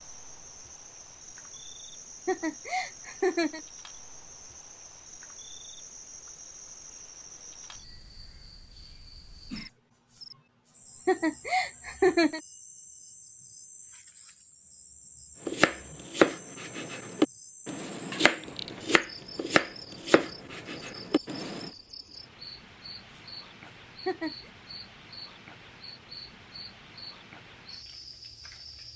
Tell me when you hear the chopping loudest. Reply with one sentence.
The loudest moment of the chopping is at 16 seconds.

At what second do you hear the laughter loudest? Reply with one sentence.
The loudest moment of the laughter is at 12 seconds.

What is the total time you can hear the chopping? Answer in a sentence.
The chopping can be heard for 6 seconds in total.